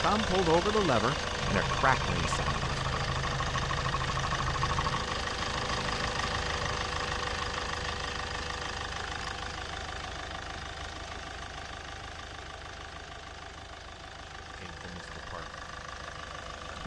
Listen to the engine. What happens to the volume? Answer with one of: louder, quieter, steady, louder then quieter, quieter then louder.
quieter.